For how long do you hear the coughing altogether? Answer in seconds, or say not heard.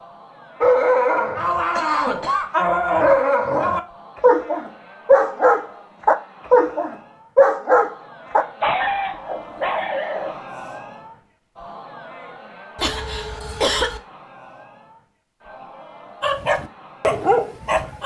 2 s.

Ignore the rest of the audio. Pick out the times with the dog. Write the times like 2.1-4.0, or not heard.
0.6-10.3, 16.2-18.0.